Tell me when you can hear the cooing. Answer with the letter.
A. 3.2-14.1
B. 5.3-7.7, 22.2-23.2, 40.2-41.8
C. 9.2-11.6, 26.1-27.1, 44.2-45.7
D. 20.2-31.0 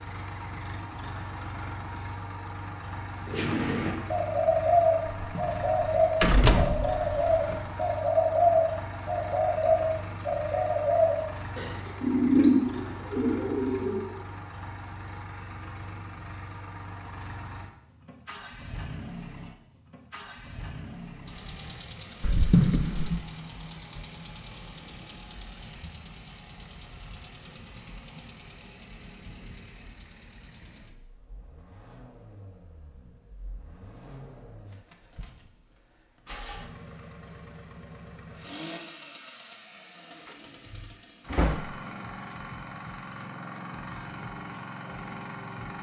A.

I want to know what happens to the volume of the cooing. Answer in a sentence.
The volume of the cooing stays about the same.